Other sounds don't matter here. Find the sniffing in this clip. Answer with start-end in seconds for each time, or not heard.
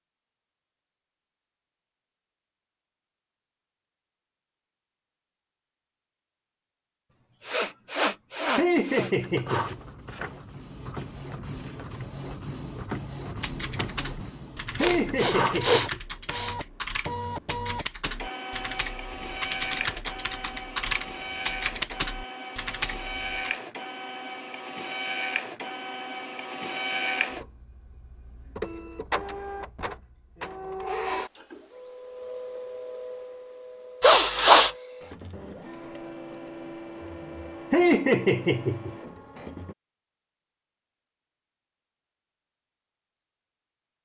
7.1-9.1, 14.8-16.6, 34.0-34.7.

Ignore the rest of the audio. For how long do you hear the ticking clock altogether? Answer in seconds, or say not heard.
not heard.